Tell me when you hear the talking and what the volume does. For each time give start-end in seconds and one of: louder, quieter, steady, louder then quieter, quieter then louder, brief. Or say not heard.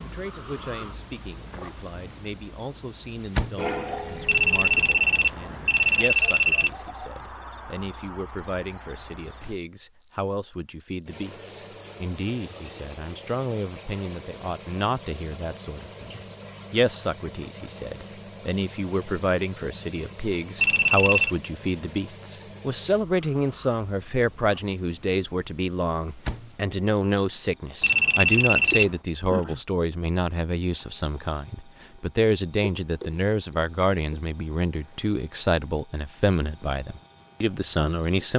0.0-38.3 louder.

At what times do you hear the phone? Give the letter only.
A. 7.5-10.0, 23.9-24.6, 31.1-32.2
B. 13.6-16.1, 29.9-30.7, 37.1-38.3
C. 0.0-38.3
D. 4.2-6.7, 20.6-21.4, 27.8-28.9
D.